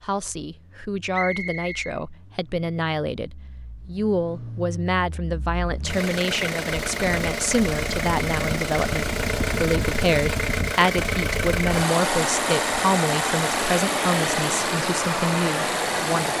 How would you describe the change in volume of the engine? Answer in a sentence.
The loudness of the engine goes up.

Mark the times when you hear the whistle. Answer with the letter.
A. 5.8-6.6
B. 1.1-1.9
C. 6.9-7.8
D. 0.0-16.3
B.